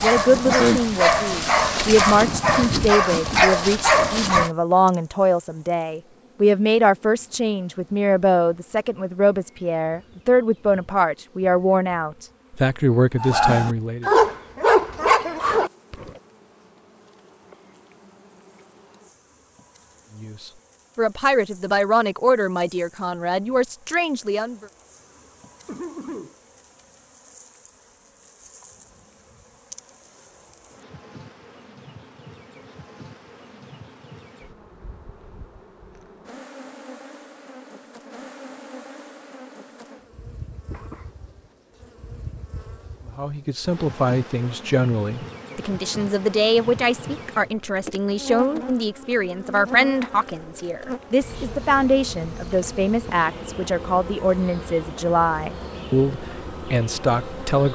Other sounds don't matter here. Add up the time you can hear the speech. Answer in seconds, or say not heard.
33 s.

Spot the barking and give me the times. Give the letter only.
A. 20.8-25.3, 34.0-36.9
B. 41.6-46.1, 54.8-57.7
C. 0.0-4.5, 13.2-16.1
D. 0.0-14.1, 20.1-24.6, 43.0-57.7
C.